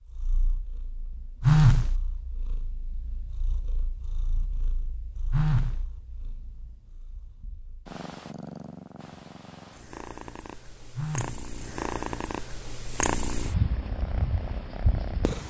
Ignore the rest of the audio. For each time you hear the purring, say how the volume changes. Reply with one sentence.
You can hear the purring from 0.1 to 15.4 s, getting louder.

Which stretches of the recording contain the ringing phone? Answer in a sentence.
The ringing phone can be heard from 1.4 to 1.9 s, from 5.3 to 5.8 s and from 10.9 to 11.4 s.